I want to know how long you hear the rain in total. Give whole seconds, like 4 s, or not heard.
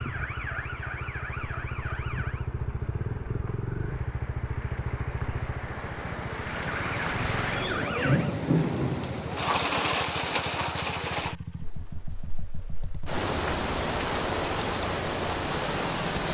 16 s.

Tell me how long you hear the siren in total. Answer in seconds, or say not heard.
4 s.